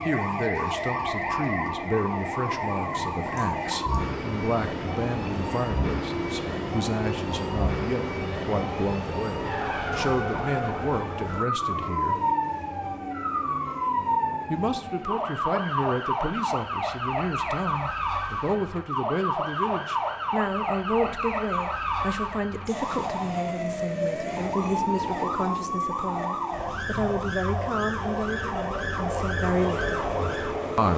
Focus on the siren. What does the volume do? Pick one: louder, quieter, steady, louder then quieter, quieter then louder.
steady.